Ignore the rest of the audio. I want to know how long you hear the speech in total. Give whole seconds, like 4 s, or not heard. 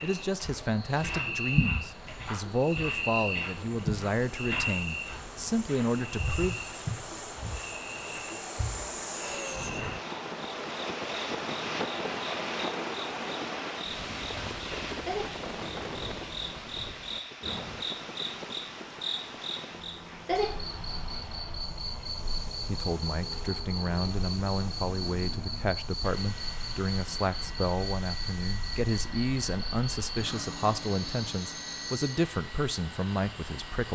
18 s.